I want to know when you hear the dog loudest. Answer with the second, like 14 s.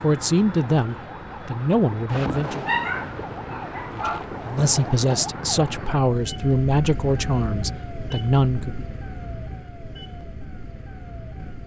3 s.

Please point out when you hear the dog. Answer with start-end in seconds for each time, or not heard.
2.6-4.2.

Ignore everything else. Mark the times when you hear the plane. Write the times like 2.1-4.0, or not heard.
not heard.